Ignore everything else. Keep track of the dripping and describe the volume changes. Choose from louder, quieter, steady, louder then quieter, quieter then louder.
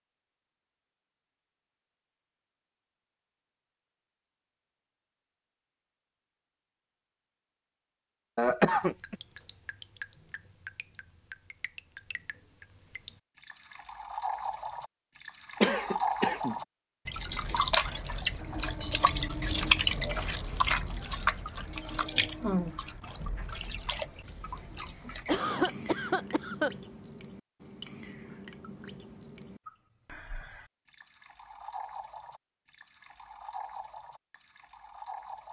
louder then quieter.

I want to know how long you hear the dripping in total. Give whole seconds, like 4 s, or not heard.
27 s.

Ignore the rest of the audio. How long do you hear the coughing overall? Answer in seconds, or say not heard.
3 s.